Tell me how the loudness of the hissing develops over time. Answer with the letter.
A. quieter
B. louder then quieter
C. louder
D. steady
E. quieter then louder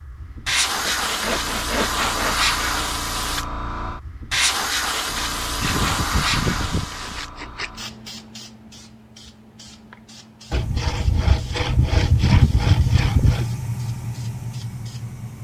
A.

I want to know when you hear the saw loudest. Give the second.
12 s.